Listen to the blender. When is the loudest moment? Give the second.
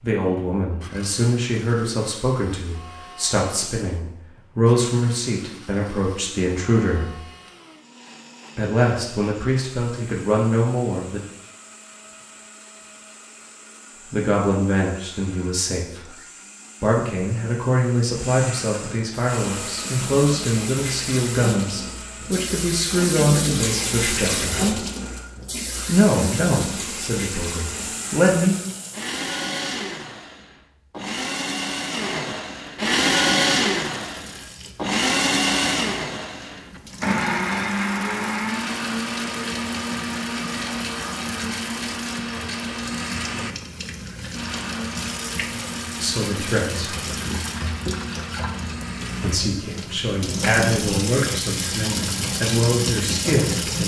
33 s.